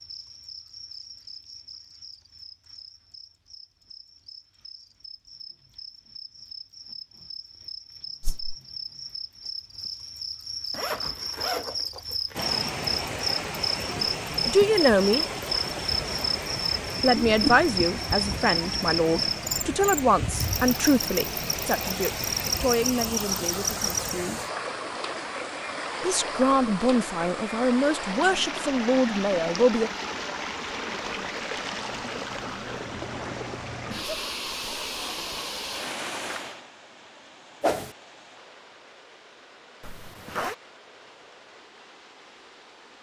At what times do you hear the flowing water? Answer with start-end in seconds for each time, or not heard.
12.3-42.9.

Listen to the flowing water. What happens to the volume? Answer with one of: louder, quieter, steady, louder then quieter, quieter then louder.
quieter.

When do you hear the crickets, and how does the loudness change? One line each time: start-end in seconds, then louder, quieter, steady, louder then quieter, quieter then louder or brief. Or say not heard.
0.0-24.1 louder.